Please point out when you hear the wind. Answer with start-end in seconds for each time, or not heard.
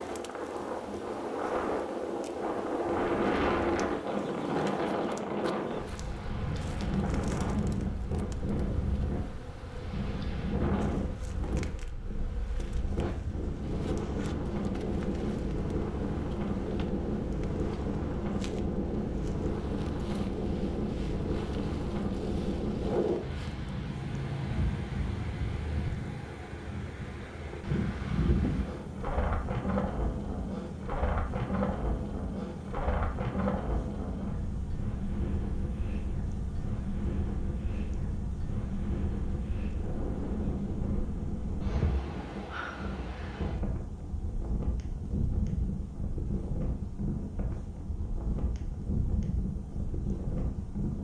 0.0-50.9.